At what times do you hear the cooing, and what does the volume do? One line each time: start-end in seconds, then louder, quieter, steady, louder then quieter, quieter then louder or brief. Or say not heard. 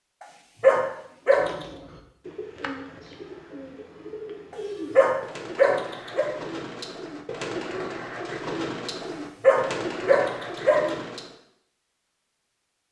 1.2-11.3 louder.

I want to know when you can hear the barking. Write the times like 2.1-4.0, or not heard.
0.6-1.5, 5.0-6.3, 9.4-10.9.